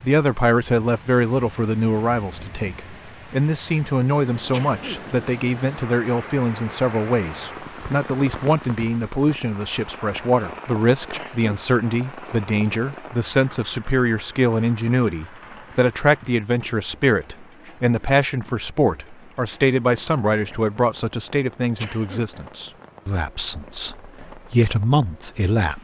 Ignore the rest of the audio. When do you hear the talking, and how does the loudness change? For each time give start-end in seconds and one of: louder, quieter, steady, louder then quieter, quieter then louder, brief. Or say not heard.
0.0-25.7 steady.